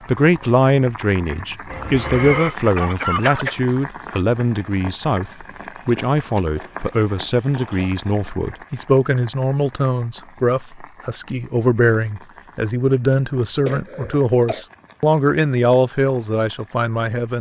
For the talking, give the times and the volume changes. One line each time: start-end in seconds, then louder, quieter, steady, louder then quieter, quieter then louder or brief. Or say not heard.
0.1-17.3 steady.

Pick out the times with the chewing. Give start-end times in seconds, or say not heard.
not heard.